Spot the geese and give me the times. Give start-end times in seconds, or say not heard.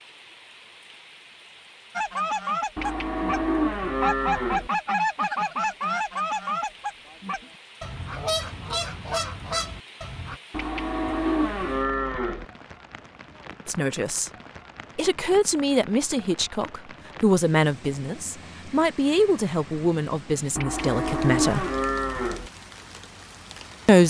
1.9-10.4.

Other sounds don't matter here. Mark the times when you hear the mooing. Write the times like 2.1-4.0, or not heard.
2.8-4.7, 10.5-12.4, 20.6-22.5.